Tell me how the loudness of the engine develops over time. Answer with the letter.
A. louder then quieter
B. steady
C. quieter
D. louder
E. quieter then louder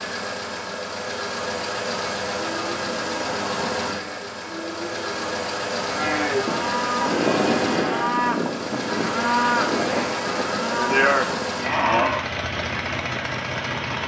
B.